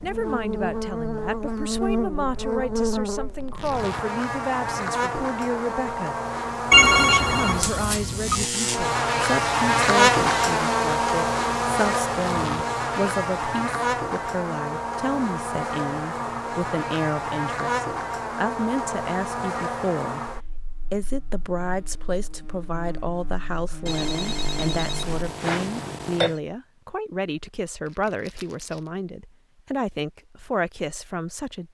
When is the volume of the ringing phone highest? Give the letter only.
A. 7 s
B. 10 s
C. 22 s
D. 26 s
A.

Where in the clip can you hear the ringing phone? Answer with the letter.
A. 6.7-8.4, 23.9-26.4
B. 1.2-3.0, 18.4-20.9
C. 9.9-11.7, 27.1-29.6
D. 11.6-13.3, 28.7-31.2
A.